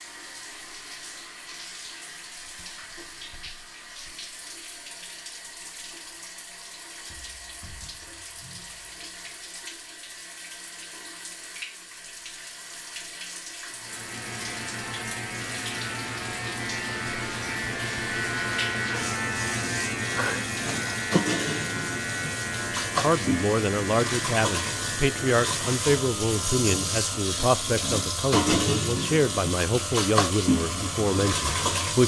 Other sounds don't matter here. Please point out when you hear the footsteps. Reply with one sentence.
The footsteps can't be heard in this clip.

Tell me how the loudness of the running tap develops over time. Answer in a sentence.
The loudness of the running tap goes up.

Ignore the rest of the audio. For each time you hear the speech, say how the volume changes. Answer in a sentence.
You can hear the speech from 23.0 to 32.0 s, at a steady volume.